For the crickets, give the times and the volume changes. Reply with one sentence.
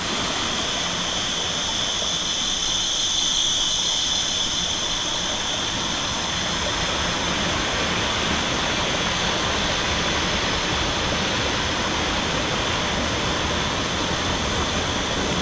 The crickets can be heard from 0.0 to 15.3 s, getting quieter.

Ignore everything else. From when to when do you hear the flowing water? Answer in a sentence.
You can hear the flowing water from 0.0 to 15.3 s.